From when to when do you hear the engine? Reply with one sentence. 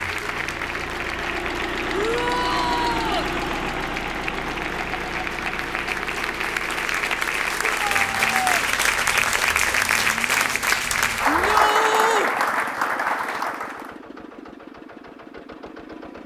The engine can be heard from 0.0 to 16.2 s.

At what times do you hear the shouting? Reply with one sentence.
The shouting can be heard from 1.9 to 3.3 s, from 7.7 to 8.7 s and from 11.2 to 12.3 s.